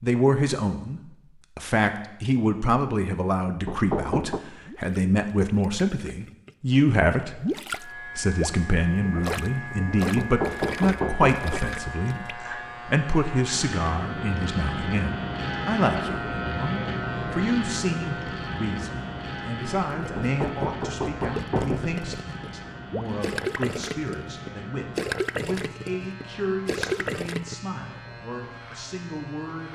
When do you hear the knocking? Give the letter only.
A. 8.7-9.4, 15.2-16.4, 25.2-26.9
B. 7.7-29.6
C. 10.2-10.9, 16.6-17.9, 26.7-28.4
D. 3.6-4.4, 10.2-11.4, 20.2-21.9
D.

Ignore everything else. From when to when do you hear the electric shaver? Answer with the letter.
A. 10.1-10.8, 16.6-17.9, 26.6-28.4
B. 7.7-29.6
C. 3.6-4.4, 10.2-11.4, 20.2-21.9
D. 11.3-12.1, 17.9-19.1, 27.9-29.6
B.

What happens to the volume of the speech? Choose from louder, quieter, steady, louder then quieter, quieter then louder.
quieter.